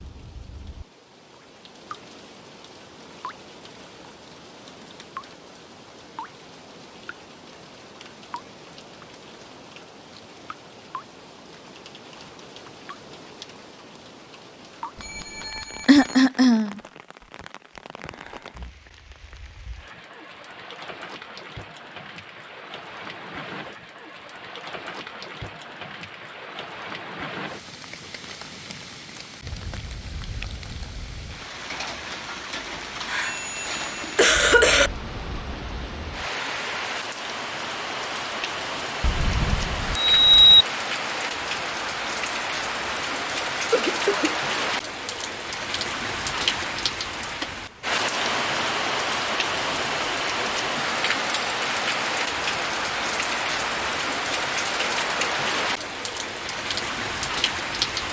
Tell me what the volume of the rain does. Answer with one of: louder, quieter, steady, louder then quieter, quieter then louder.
louder.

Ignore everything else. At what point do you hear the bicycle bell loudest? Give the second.
40 s.